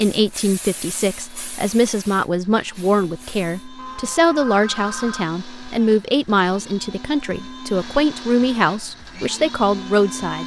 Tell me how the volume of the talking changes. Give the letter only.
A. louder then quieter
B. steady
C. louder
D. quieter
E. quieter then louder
B.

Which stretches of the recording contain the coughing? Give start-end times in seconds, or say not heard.
not heard.